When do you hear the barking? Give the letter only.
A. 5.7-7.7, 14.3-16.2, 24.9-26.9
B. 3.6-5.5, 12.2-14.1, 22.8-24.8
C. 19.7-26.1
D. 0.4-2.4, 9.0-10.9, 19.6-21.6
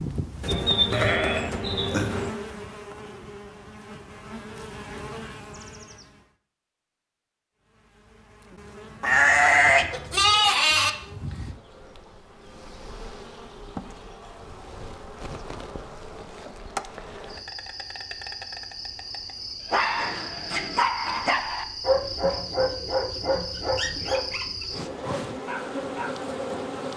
C.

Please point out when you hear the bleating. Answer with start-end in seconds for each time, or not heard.
0.4-2.4, 9.0-10.9, 19.6-21.6.